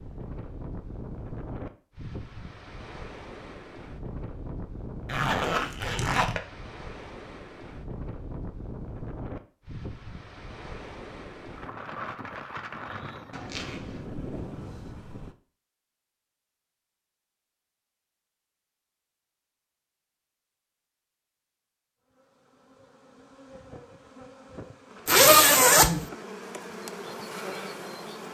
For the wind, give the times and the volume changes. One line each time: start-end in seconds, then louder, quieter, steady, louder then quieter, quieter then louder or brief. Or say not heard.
0.0-15.3 steady.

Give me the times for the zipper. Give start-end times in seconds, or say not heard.
5.0-6.4, 13.3-14.1, 25.1-26.1.